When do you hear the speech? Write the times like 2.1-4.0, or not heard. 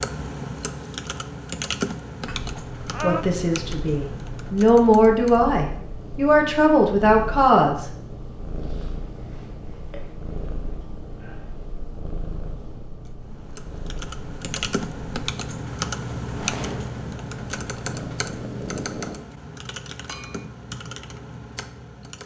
3.0-7.9.